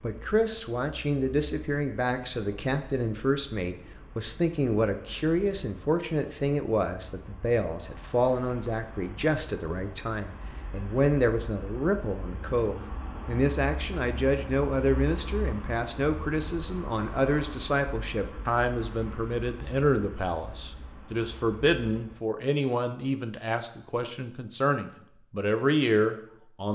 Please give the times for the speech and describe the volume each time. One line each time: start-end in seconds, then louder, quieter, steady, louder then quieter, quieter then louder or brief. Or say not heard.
0.0-26.6 steady.